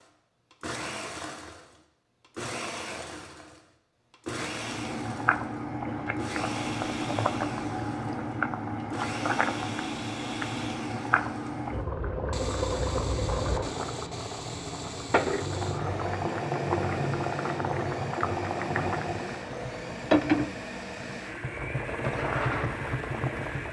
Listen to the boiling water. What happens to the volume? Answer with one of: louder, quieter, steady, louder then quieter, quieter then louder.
steady.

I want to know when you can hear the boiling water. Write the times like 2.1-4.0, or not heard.
4.5-23.6.